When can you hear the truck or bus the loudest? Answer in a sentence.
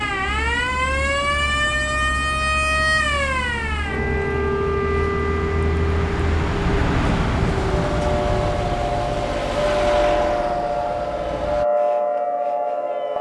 The loudest moment of the truck or bus is at 7 seconds.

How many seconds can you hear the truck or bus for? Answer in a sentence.
You can hear the truck or bus for 12 seconds altogether.